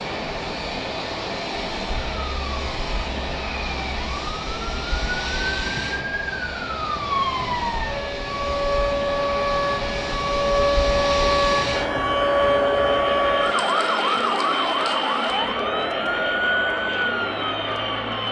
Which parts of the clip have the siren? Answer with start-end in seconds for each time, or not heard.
2.0-18.2.